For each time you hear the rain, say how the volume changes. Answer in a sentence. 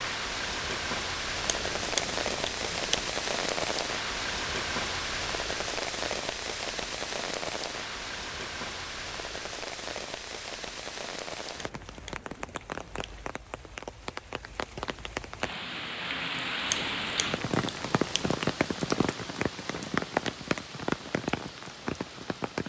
The rain can be heard from 0.0 to 22.6 s, getting quieter then louder.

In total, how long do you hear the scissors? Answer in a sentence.
The scissors can be heard for 5 seconds in total.